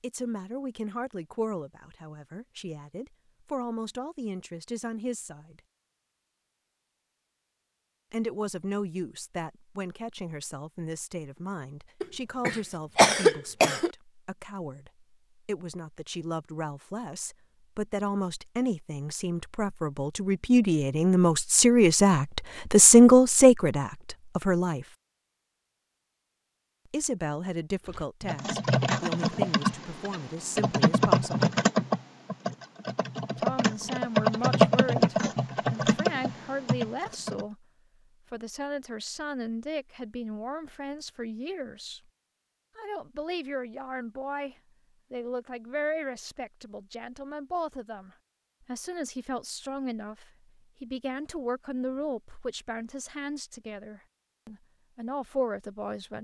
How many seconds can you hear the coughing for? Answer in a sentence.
You can hear the coughing for 2 seconds altogether.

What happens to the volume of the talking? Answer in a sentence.
The loudness of the talking goes up, then down.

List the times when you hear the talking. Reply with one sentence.
The talking can be heard from 0.0 to 5.6 s, from 8.1 to 24.9 s, from 26.9 to 31.5 s, from 33.4 to 37.6 s, from 38.3 to 42.0 s and from 42.8 to 56.1 s.